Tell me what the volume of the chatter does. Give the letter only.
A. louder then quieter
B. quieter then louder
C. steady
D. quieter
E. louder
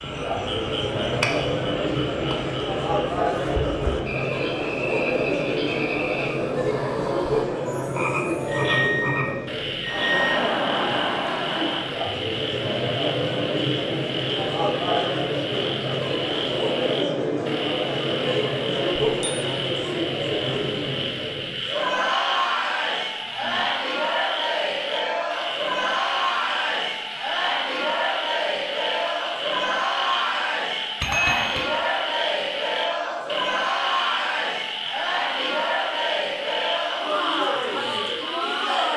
C.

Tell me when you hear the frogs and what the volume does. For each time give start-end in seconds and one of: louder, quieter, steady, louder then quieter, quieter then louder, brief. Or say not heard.
0.0-38.9 steady.